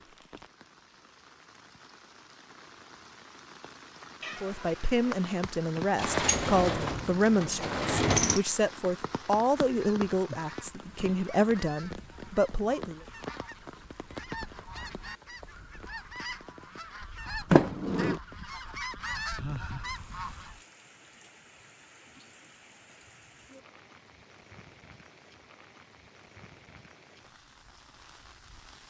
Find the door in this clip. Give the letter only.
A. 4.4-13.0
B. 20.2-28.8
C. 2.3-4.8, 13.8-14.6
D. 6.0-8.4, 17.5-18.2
D.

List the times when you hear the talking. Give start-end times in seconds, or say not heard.
4.4-13.0.